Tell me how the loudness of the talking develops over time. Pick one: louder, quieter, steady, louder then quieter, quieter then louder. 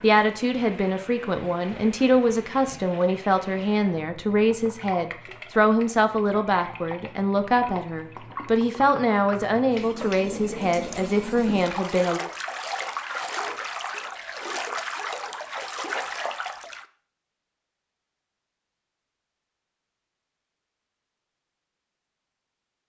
steady.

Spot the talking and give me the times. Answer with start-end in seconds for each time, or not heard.
0.0-12.2.